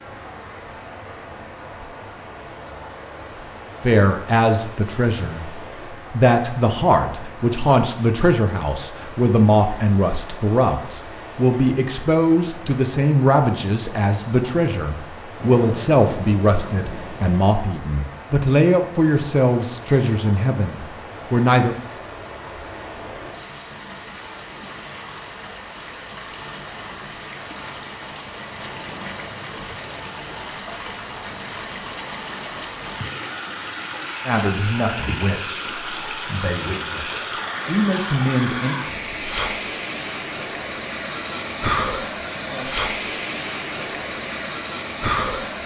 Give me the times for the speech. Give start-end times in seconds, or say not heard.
3.8-21.8, 34.2-38.8.